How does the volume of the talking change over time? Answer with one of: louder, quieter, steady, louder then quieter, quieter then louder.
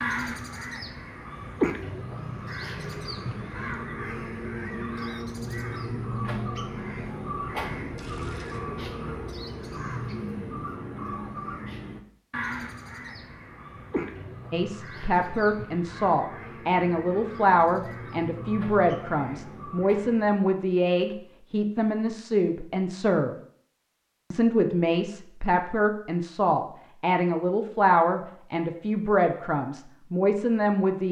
steady.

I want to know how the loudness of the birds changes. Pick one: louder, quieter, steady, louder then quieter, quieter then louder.
quieter.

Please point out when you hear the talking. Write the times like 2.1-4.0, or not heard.
14.5-23.4, 24.3-31.0.